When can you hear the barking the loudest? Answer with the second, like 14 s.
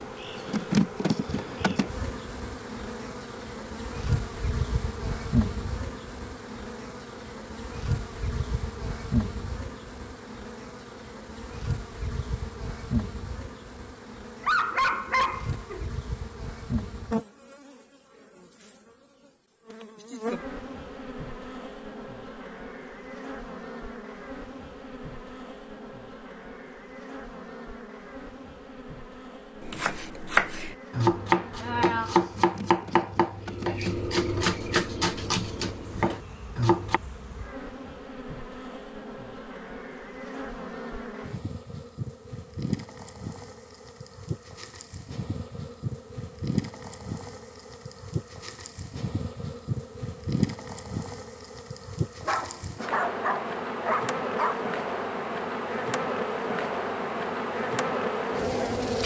15 s.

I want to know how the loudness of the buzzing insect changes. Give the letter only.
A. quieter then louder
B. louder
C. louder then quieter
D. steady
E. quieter
A.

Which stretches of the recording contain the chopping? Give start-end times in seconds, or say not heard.
29.6-37.0.